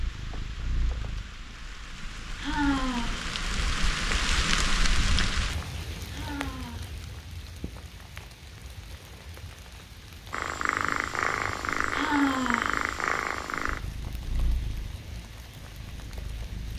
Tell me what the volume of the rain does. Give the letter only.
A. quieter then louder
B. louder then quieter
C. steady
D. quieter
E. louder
B.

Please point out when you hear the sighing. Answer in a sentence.
The sighing can be heard from 2.4 to 3.2 s, from 6.0 to 6.9 s and from 11.9 to 12.8 s.